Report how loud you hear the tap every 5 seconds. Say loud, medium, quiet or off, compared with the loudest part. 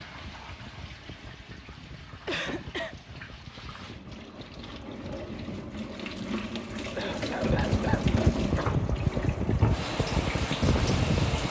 quiet, loud, loud.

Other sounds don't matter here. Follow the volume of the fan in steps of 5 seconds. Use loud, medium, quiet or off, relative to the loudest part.
quiet, loud, loud.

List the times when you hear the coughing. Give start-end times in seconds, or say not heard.
2.2-3.0, 6.2-8.8.